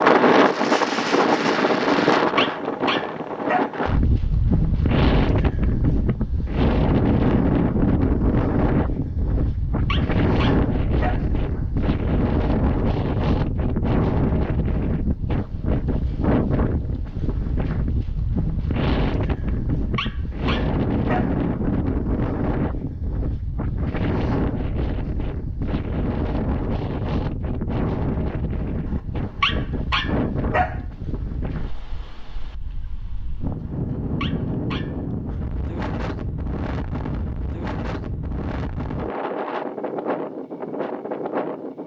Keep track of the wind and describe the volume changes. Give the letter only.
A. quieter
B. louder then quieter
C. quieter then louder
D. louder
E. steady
A.